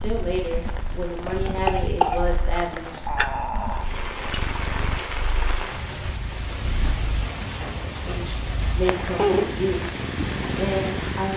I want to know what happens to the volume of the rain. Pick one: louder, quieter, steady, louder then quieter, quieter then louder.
louder.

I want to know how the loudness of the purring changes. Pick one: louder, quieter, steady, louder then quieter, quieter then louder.
louder.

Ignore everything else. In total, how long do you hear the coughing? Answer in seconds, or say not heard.
2 s.